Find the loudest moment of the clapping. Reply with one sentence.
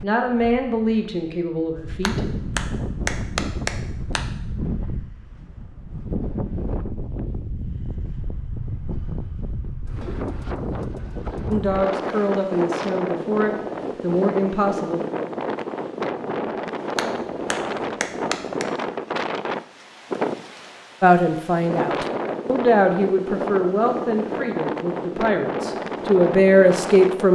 The volume of the clapping peaks at 3 seconds.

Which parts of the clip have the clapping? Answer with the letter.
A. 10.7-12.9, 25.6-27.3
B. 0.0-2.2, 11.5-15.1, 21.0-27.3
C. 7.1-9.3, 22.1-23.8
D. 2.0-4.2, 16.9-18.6
D.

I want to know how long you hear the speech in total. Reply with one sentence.
The speech can be heard for 12 seconds in total.